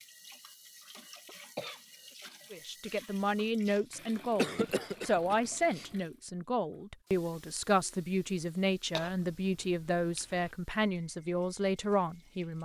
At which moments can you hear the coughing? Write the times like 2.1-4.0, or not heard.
1.2-1.8, 4.3-5.9, 8.9-10.5.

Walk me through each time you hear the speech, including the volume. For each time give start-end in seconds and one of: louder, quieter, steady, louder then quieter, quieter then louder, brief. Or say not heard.
2.5-12.6 steady.